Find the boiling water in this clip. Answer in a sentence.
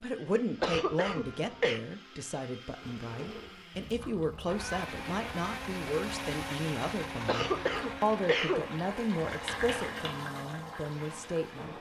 You can hear the boiling water from 3.7 to 11.7 s.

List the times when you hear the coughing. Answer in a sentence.
You can hear the coughing from 0.6 to 1.8 s and from 7.2 to 8.7 s.